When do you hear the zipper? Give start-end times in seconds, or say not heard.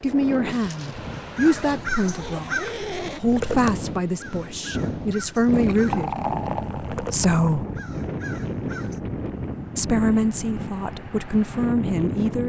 1.4-3.2.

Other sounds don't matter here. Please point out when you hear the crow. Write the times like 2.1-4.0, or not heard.
1.1-6.0, 6.8-9.0.